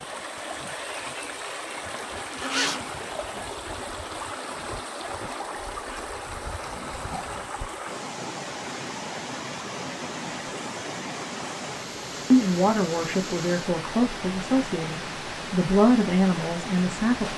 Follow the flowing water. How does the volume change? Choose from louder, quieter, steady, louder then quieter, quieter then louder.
steady.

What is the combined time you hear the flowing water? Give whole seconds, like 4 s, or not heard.
17 s.